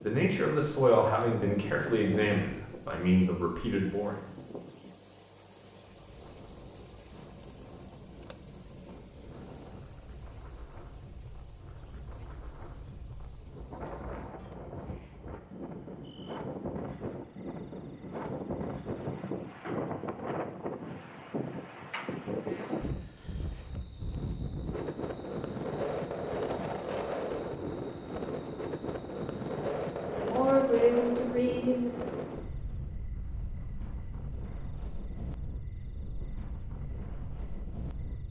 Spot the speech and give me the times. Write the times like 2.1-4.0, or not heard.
0.0-4.2, 30.1-32.1.